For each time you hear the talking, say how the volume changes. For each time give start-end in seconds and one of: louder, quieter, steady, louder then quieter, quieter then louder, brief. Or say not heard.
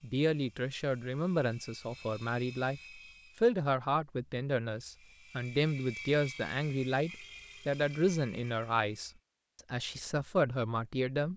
0.0-9.1 steady
9.7-11.3 brief.